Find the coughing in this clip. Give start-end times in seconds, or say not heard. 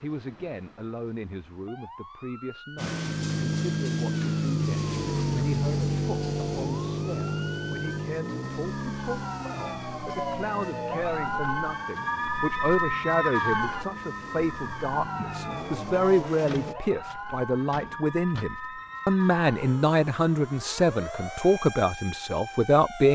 not heard.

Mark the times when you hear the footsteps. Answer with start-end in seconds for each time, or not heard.
not heard.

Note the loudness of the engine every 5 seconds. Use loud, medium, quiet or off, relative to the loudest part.
loud, loud, quiet, medium, off.